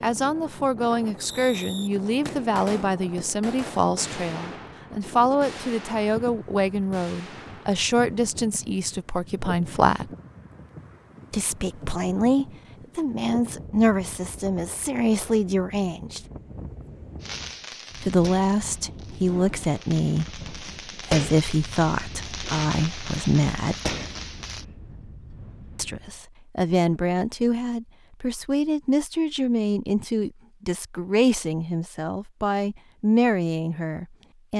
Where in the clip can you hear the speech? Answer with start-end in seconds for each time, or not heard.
0.0-10.1, 11.3-16.2, 18.0-23.8, 25.8-34.5.